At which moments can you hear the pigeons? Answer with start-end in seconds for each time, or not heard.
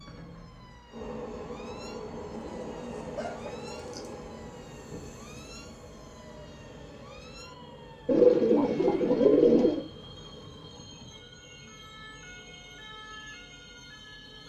2.3-4.2, 8.1-9.8.